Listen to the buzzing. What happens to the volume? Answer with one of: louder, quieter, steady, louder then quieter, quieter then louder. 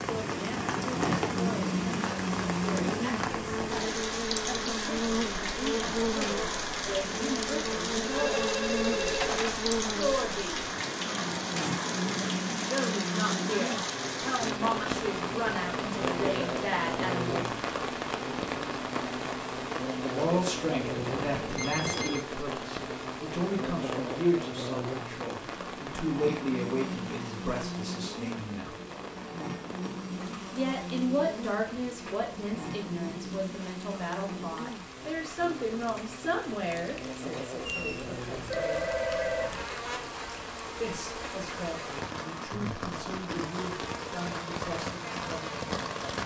quieter.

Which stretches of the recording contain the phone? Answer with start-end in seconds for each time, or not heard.
8.1-9.6, 20.9-22.2, 37.6-39.6.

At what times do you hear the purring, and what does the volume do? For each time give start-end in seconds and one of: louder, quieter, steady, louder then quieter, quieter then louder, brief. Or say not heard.
not heard.